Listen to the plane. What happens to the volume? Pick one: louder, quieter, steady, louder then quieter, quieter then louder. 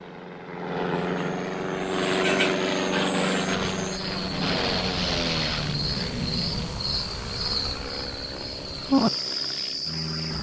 quieter.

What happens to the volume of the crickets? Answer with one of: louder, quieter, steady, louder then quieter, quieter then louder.
louder.